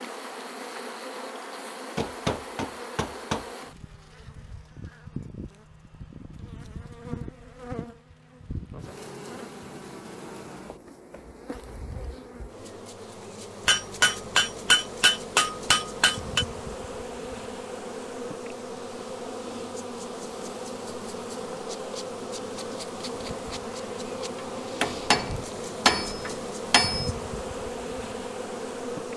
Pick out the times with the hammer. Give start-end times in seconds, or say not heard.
1.9-3.5, 13.7-16.4, 24.8-27.1.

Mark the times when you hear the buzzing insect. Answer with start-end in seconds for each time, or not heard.
0.0-29.1.